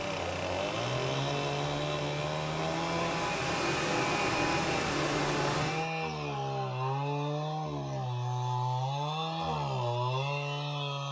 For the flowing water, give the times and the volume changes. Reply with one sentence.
You can hear the flowing water from 0.0 to 5.9 s, getting louder.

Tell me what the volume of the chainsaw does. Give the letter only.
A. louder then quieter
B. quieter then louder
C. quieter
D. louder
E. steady
E.